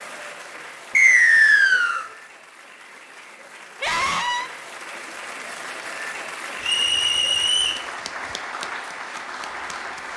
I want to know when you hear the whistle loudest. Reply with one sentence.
The loudest moment of the whistle is at 1 second.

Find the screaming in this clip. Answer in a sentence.
The screaming can be heard from 3.8 to 4.5 s.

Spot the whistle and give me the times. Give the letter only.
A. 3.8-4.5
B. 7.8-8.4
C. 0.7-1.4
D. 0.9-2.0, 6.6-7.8
D.